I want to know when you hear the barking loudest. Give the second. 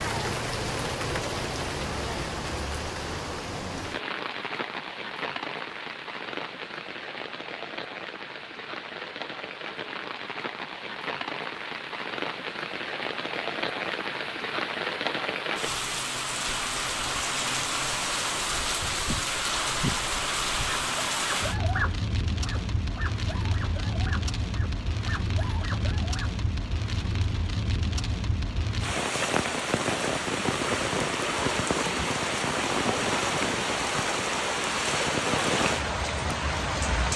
22 s.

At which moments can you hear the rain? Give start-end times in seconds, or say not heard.
0.0-37.1.